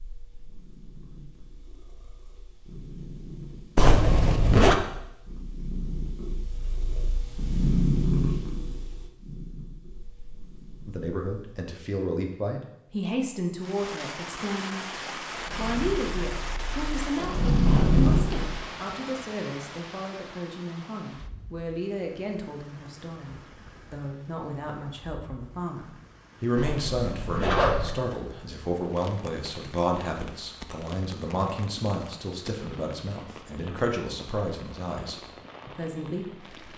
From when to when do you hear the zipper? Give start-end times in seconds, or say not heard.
3.8-4.8, 17.6-18.1, 26.6-27.9.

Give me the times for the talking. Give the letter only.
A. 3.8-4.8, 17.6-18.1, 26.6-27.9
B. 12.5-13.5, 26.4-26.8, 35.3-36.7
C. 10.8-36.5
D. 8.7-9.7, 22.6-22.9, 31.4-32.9
C.